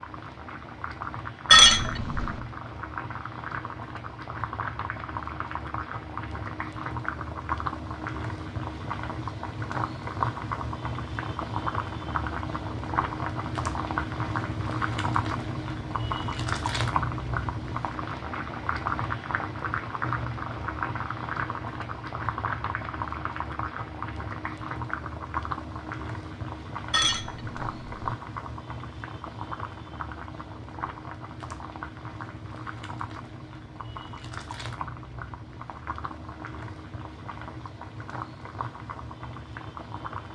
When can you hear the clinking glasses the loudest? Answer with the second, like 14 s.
2 s.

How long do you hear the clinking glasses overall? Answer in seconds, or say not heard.
2 s.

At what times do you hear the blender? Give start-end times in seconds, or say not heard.
not heard.